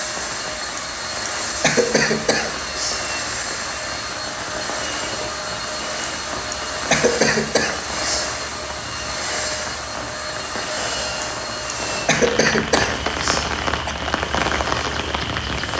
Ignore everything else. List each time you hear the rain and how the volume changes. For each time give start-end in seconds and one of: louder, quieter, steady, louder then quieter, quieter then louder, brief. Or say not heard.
0.0-15.7 louder.